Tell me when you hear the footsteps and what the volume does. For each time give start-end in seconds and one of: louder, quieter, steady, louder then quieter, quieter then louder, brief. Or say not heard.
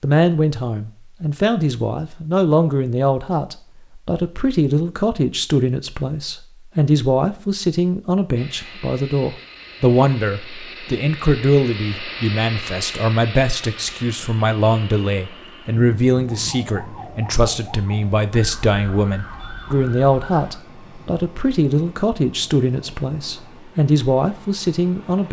not heard.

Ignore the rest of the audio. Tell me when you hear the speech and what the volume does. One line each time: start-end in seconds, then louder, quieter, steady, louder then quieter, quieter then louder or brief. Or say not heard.
0.0-25.2 steady.